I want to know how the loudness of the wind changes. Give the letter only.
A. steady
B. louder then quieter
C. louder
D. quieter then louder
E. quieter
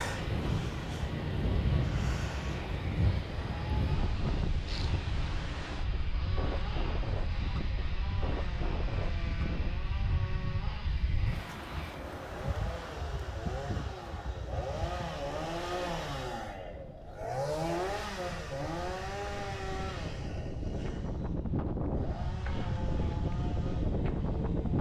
D.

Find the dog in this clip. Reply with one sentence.
You can't hear the dog here.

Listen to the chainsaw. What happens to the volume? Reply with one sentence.
The volume of the chainsaw goes up, then down.